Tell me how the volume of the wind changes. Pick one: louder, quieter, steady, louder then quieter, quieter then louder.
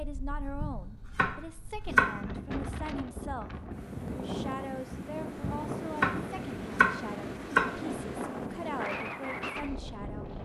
louder.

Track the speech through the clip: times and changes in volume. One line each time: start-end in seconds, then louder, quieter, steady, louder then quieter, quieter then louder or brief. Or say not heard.
0.0-10.3 steady.